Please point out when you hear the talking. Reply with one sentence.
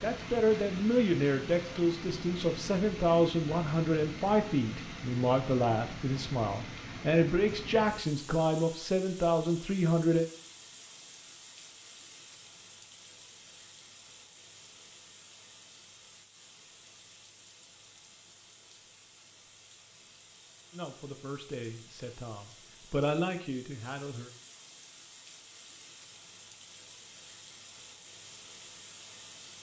The talking can be heard from 0.0 to 10.2 s and from 20.7 to 24.3 s.